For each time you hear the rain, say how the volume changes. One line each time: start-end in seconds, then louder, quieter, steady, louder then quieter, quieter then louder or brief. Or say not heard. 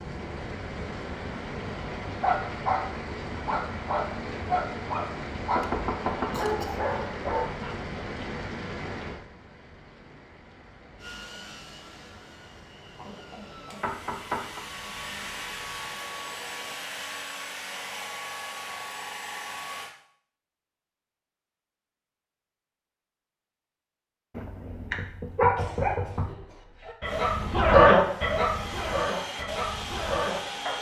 0.0-16.8 quieter.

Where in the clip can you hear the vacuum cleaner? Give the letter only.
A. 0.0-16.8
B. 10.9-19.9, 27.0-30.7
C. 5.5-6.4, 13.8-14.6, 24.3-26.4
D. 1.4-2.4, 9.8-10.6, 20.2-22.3
B.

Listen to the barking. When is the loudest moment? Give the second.
28 s.